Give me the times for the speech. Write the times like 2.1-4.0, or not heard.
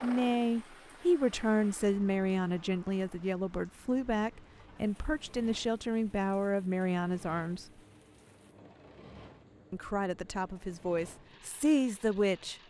0.0-7.7, 9.7-12.6.